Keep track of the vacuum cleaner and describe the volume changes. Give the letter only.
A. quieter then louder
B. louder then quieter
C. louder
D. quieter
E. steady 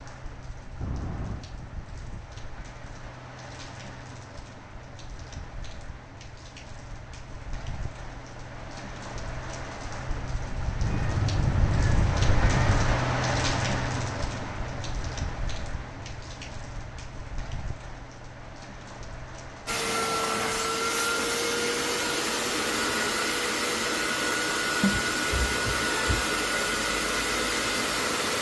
E.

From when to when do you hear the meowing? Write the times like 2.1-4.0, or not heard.
0.8-1.5, 10.8-12.9, 24.8-26.2.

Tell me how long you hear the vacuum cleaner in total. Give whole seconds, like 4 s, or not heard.
9 s.